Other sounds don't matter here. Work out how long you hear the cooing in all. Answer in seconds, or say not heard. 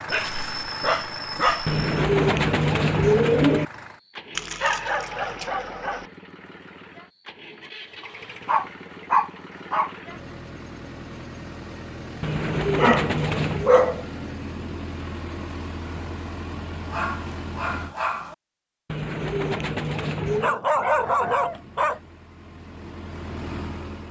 5 s.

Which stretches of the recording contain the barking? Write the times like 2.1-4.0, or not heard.
0.1-1.9, 4.3-6.0, 8.0-9.9, 12.8-14.1, 16.9-18.4, 20.4-22.0.